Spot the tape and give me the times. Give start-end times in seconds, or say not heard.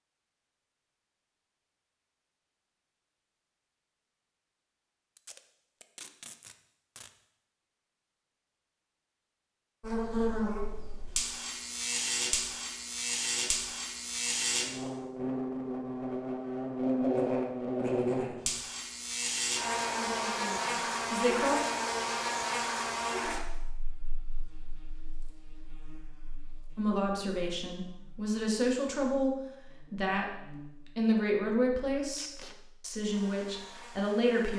5.2-7.1, 32.1-32.5.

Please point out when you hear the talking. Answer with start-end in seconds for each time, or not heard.
20.0-21.6, 26.8-34.5.